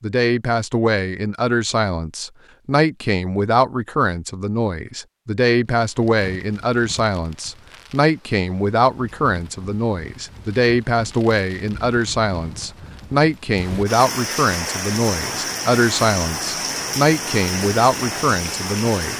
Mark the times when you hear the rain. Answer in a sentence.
You can hear the rain from 5.8 to 19.1 s.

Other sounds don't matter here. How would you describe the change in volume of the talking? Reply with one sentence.
The loudness of the talking stays about the same.